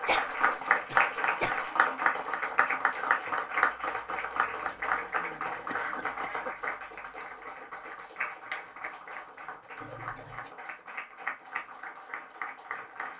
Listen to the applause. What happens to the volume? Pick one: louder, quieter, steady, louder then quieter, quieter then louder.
quieter.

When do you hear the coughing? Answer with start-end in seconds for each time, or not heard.
0.1-1.7, 5.7-6.5, 9.8-10.6.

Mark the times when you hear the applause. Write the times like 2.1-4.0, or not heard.
0.0-13.1.